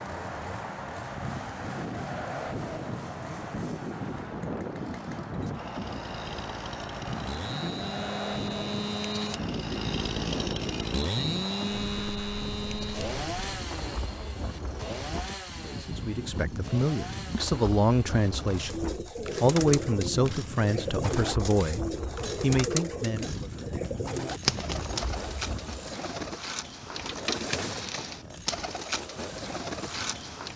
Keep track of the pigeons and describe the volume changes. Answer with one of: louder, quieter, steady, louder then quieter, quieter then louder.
steady.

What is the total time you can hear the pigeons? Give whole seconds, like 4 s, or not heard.
12 s.